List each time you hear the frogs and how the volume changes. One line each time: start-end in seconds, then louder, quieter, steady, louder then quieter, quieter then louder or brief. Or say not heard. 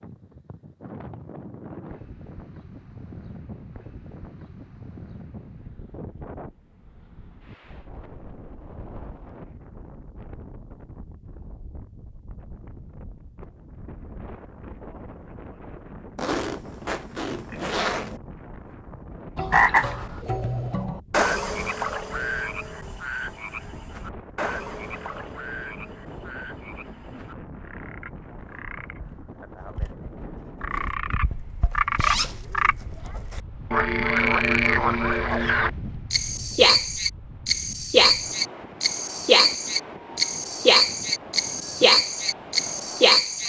19.4-43.4 quieter then louder.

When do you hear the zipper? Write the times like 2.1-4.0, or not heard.
16.1-18.2, 31.9-32.5.